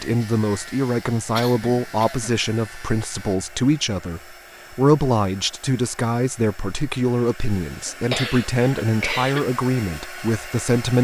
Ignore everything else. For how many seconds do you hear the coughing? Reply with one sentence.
You can hear the coughing for 3 seconds altogether.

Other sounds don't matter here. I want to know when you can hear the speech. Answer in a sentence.
You can hear the speech from 0.0 to 11.0 s.